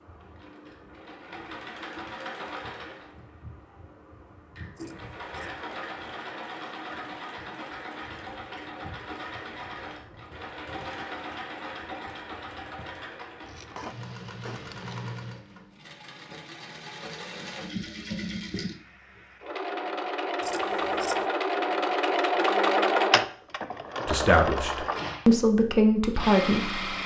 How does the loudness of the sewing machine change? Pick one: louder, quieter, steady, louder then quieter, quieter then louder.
louder.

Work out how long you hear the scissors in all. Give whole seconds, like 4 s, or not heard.
3 s.